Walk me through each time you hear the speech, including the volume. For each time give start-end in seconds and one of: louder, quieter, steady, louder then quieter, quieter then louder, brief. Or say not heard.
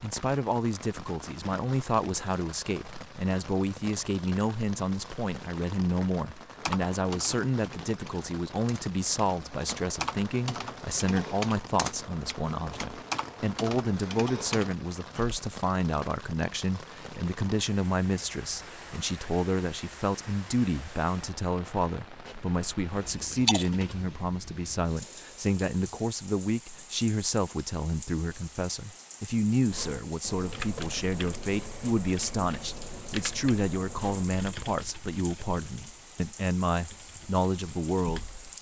0.0-38.5 steady.